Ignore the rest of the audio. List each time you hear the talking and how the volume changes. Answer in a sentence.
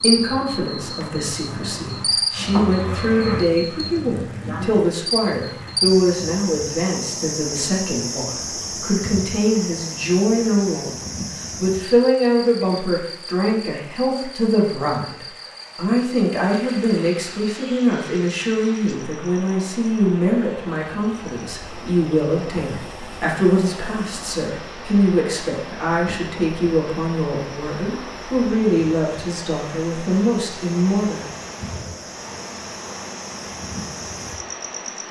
The talking can be heard from 0.0 to 31.2 s, at a steady volume.